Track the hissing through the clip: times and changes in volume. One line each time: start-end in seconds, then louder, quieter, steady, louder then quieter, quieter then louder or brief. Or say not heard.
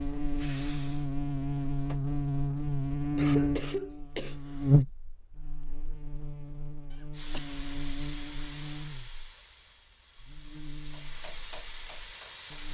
0.0-2.0 brief
7.1-12.6 quieter then louder.